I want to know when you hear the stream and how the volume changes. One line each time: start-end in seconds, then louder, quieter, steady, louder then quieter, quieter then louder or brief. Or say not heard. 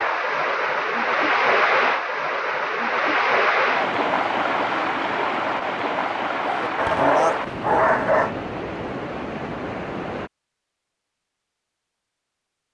0.0-10.3 quieter.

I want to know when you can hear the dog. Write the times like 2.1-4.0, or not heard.
6.5-8.3.